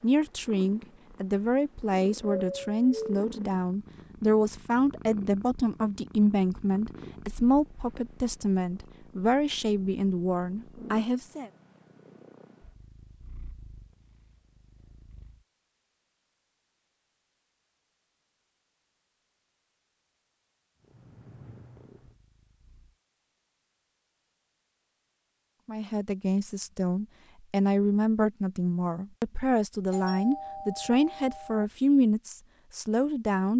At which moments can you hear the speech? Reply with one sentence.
You can hear the speech from 0.0 to 11.5 s and from 25.6 to 33.5 s.